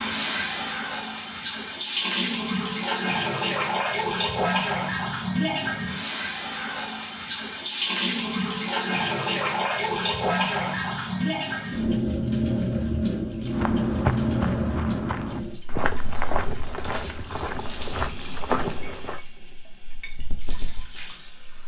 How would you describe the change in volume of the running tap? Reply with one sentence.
The volume of the running tap goes down.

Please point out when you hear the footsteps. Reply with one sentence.
You can hear the footsteps from 13.5 to 19.2 s.